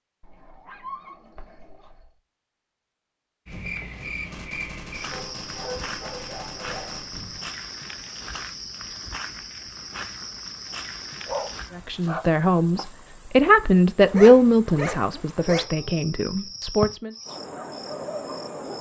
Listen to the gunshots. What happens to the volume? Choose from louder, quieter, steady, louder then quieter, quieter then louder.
steady.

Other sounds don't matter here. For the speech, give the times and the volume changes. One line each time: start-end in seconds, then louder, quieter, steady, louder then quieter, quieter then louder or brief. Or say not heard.
11.8-17.1 louder then quieter.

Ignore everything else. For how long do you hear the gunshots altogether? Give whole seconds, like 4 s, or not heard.
4 s.